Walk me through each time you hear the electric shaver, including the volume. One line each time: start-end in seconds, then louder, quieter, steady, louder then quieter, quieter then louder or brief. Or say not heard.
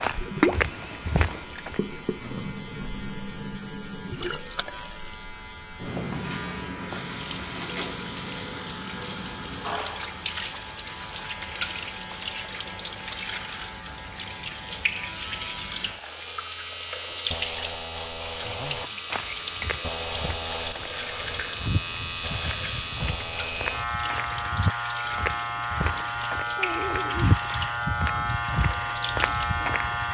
0.0-30.1 louder.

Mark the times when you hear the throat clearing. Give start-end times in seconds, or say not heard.
26.6-27.4.